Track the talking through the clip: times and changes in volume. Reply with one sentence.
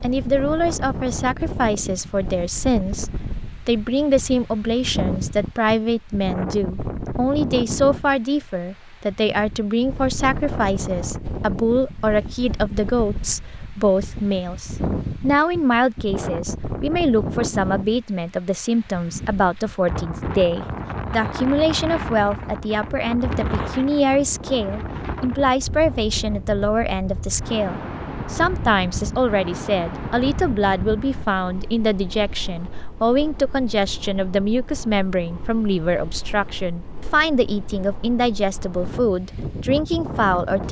The talking can be heard from 0.0 to 40.6 s, at a steady volume.